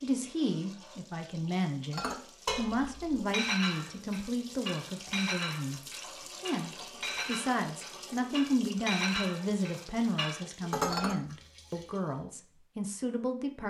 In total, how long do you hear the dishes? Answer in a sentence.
The dishes can be heard for 9 seconds in total.